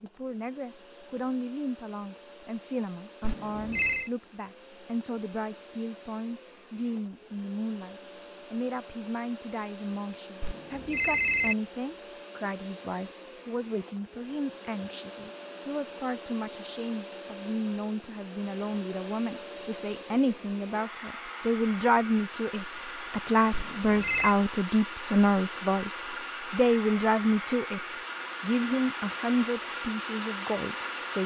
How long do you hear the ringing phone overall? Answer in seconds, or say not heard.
3 s.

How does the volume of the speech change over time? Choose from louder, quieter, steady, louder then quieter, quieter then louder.
louder.